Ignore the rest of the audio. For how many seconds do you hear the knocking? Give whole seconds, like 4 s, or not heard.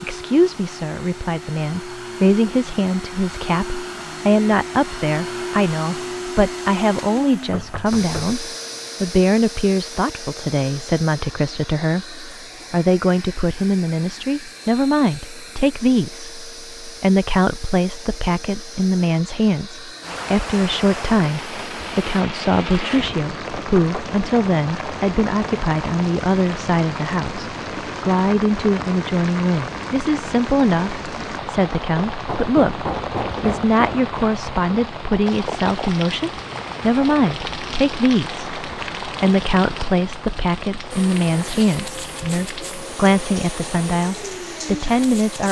3 s.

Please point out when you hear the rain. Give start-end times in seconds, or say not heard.
20.0-45.4.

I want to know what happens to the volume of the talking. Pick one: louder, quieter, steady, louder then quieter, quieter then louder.
steady.